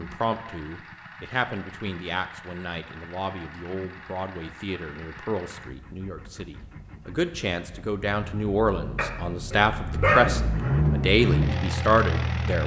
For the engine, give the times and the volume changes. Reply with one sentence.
The engine can be heard from 0.0 to 12.6 s, getting louder.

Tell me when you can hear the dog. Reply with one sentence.
You can hear the dog from 8.9 to 10.8 s.